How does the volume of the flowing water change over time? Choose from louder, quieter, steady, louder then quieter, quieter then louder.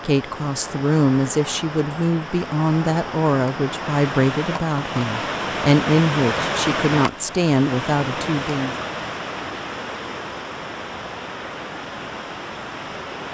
louder then quieter.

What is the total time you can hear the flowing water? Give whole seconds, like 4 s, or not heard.
13 s.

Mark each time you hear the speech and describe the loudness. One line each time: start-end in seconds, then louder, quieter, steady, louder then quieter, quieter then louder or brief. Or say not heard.
0.1-8.8 steady.